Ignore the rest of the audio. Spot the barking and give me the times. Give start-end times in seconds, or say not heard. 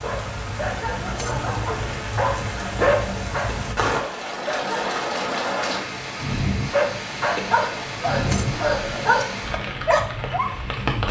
0.0-5.0, 6.7-11.0.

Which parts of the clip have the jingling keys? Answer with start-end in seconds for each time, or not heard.
1.1-2.0, 8.2-9.2.